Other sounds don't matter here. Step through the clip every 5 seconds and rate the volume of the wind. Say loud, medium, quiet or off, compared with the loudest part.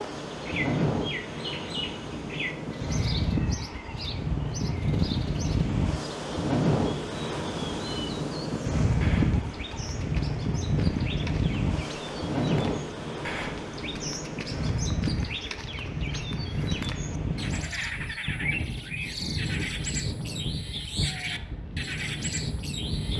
loud, loud, loud, medium, medium.